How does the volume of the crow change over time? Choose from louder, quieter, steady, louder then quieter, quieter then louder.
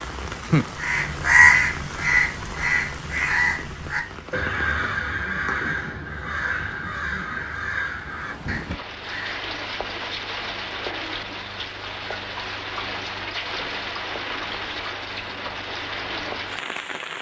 quieter.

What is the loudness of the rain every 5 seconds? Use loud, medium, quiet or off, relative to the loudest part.
loud, medium, loud, loud.